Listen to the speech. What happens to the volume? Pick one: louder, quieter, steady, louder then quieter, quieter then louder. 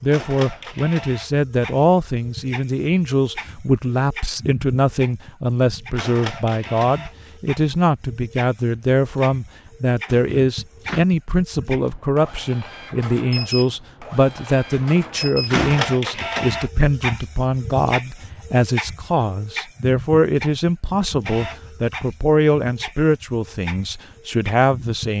steady.